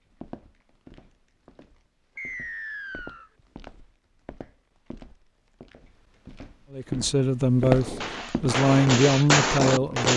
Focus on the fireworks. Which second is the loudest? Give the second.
9 s.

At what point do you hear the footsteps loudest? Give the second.
8 s.